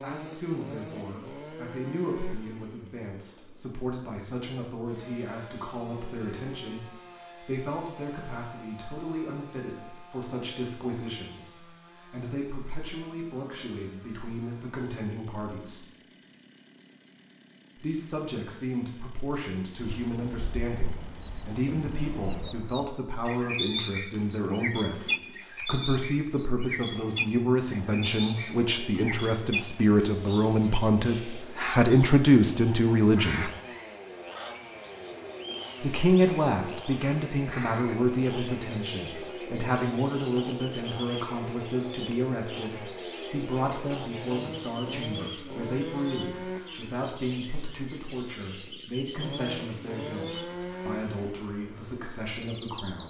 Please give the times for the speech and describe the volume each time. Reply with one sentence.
The speech can be heard from 0.0 to 15.8 s, at a steady volume; from 17.8 to 33.5 s, getting louder; and from 35.8 to 53.0 s, getting quieter.